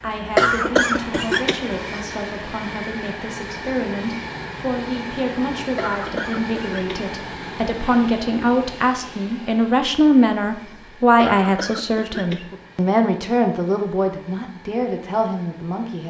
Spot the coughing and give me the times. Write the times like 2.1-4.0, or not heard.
0.3-1.6, 5.8-7.2, 11.2-12.6.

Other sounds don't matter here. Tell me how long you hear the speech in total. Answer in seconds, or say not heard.
16 s.